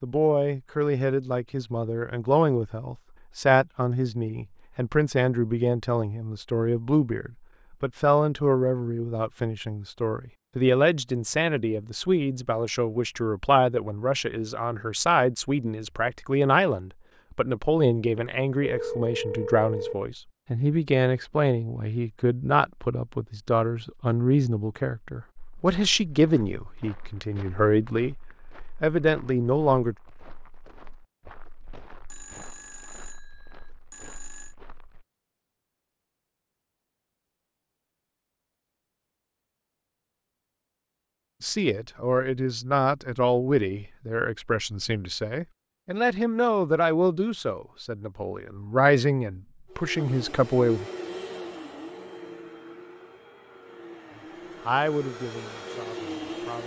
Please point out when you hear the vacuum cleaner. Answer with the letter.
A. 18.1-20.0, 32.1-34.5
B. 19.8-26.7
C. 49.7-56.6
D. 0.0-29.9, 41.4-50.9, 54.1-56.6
C.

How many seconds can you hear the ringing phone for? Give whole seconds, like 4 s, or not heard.
4 s.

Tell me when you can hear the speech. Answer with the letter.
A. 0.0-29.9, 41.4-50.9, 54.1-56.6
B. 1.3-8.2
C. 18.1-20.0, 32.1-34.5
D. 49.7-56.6
A.